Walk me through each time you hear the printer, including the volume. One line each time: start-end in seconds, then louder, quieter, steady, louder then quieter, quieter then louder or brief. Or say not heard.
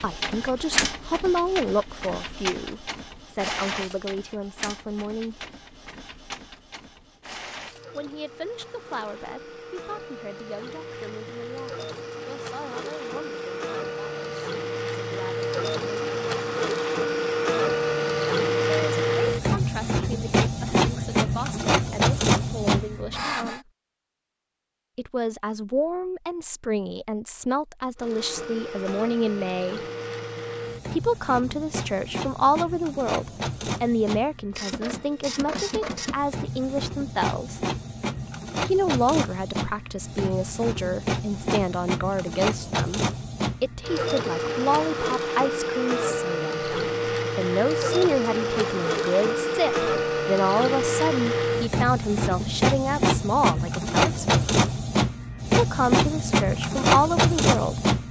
0.0-23.6 quieter then louder
27.9-58.0 louder.